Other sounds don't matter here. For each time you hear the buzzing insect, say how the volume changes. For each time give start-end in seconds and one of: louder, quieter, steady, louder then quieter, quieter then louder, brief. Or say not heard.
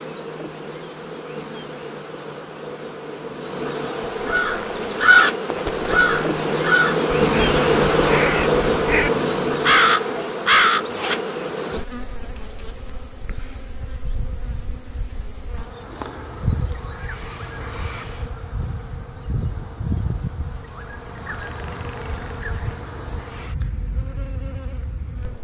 0.0-25.3 louder then quieter.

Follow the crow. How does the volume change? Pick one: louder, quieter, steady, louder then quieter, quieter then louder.
quieter then louder.